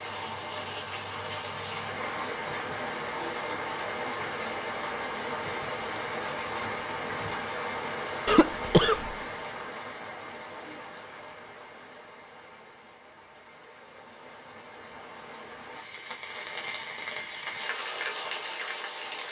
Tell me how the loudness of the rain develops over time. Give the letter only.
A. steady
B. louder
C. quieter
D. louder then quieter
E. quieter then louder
E.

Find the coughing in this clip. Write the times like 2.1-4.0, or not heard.
8.2-9.2.